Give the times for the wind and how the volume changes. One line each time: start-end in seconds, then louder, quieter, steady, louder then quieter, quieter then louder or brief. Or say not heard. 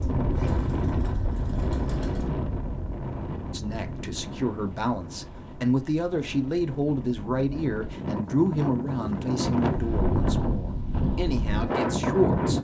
0.0-12.5 quieter then louder.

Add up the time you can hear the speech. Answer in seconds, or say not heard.
9 s.